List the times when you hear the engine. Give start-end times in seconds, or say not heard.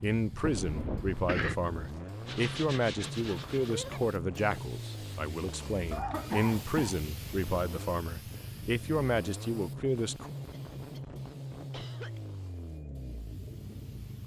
0.0-14.2.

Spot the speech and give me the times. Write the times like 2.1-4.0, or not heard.
0.0-10.3.